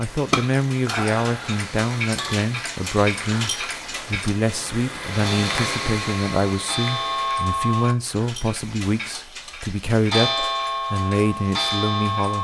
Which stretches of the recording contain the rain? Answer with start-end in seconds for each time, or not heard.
0.0-7.5.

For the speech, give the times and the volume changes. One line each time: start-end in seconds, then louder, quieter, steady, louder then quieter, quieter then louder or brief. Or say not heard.
0.0-12.4 steady.